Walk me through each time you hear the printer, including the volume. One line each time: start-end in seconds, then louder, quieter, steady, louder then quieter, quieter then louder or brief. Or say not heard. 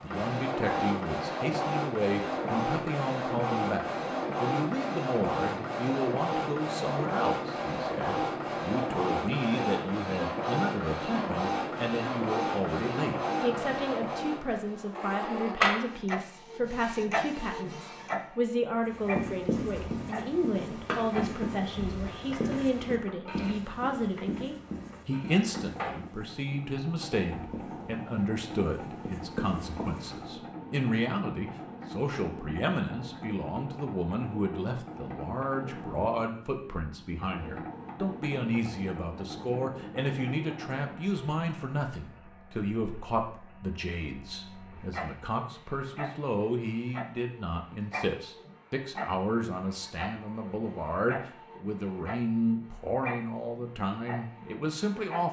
0.0-55.2 quieter.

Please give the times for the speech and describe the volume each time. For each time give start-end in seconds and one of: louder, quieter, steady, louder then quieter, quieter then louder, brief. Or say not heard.
0.0-55.2 steady.